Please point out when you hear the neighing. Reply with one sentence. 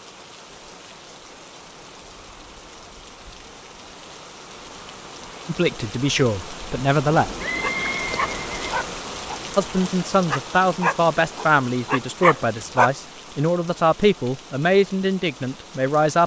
The neighing can be heard from 7.1 to 8.8 s.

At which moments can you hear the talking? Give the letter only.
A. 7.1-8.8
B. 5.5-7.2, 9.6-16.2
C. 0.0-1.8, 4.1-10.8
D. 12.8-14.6
B.